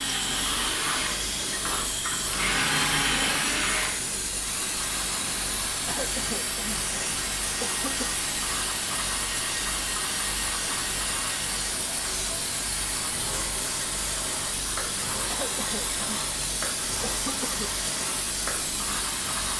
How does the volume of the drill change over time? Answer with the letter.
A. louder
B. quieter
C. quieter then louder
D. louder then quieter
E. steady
B.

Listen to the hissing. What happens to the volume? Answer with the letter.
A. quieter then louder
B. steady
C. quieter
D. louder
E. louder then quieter
B.